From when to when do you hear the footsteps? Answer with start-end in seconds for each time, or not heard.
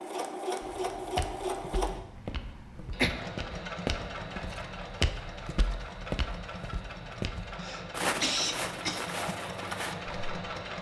0.6-10.2.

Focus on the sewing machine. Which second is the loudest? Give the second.
1 s.